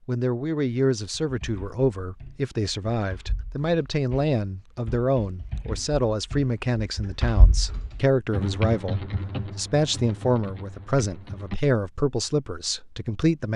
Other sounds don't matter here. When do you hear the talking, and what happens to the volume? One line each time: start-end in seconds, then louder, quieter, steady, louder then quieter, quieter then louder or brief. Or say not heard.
0.1-13.5 steady.